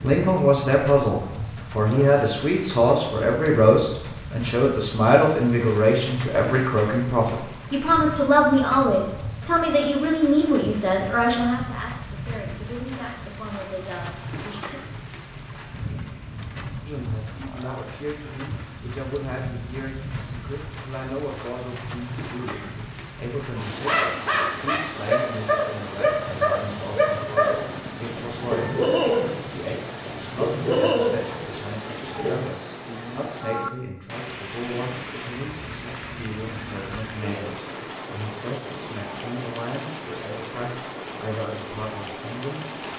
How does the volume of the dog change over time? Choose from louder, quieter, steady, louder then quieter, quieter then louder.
steady.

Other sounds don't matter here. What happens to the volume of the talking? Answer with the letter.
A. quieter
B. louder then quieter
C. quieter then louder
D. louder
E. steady
A.